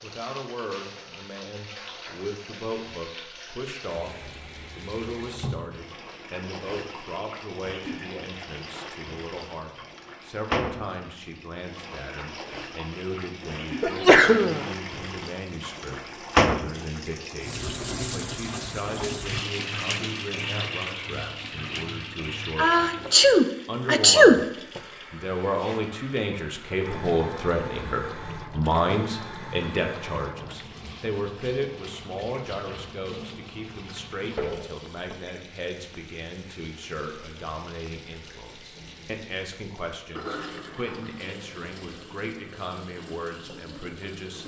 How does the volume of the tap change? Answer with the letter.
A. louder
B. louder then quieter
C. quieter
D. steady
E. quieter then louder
B.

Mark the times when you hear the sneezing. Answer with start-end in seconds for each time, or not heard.
13.8-14.7, 22.6-24.4.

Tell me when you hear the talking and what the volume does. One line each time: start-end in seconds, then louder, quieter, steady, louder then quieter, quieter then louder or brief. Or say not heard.
0.0-24.4 steady
25.1-44.4 quieter.